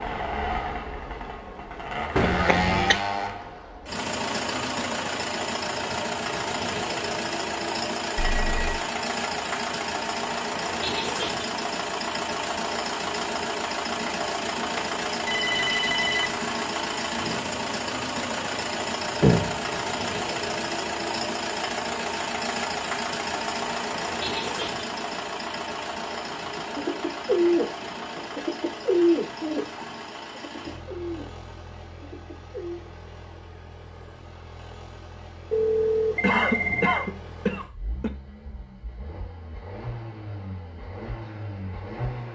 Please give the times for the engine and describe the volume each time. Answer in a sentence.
The engine can be heard from 0.0 to 42.3 s, getting quieter.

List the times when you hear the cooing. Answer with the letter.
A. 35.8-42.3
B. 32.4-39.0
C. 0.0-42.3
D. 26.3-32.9
D.